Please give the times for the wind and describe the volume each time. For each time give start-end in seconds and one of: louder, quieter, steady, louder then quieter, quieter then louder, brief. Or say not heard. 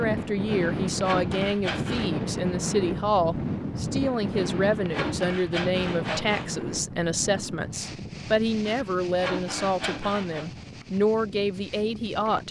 0.0-12.4 quieter.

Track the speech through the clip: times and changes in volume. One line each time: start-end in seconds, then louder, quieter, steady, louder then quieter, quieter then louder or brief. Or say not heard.
0.0-12.4 steady.